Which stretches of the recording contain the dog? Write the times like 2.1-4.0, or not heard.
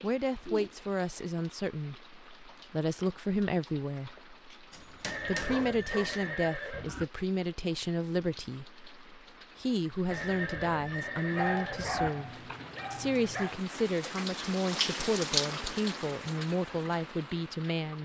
4.7-6.2, 11.3-13.6.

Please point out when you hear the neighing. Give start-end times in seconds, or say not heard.
5.0-7.0, 10.1-12.1.